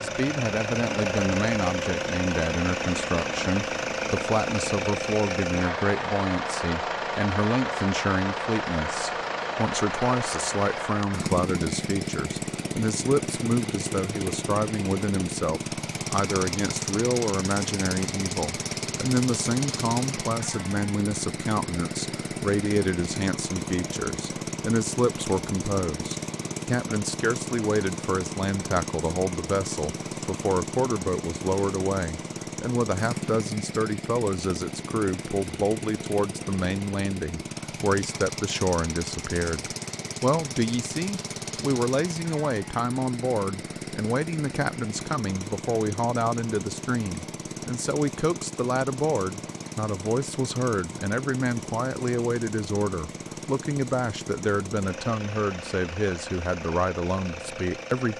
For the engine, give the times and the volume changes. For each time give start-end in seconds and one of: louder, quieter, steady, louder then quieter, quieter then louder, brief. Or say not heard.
0.0-58.1 quieter.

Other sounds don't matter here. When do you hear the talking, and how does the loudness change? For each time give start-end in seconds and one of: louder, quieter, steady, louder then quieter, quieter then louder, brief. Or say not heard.
0.0-58.1 steady.